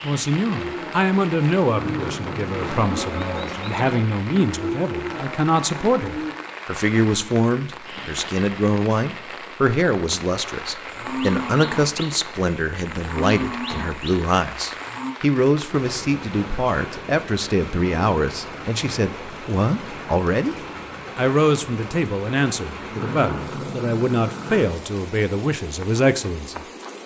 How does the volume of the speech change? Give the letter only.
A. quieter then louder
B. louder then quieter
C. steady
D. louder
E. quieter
C.